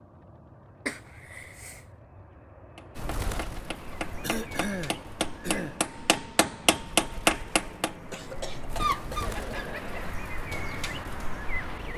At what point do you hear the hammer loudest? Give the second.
7 s.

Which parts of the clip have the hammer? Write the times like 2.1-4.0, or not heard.
2.8-8.0.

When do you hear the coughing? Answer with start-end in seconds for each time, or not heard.
0.8-1.8, 4.2-5.8, 8.1-10.1.